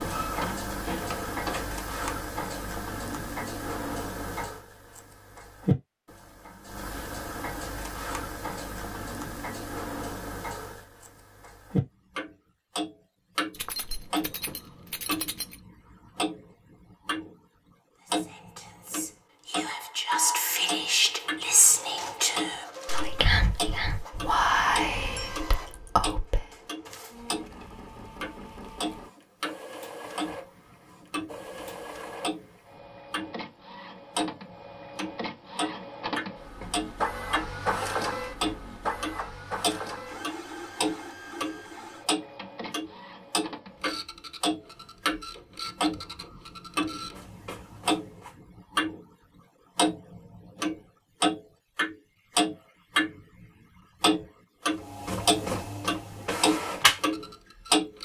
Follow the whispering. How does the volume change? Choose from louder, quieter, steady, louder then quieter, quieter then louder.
louder.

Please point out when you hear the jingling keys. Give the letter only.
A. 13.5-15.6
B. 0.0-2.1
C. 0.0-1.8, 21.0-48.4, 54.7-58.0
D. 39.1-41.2
A.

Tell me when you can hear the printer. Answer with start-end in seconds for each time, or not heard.
0.0-1.8, 21.0-48.4, 54.7-58.0.